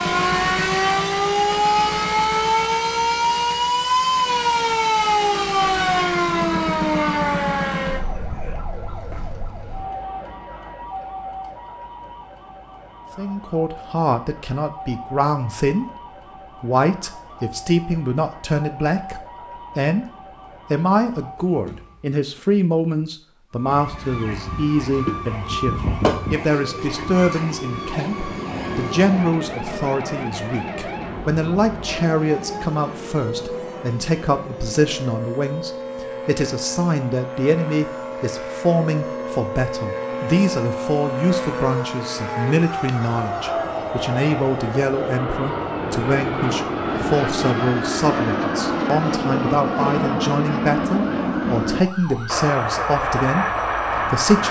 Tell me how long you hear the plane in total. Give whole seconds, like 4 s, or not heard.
26 s.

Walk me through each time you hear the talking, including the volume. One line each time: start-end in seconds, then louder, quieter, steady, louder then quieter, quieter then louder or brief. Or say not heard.
13.2-54.4 steady.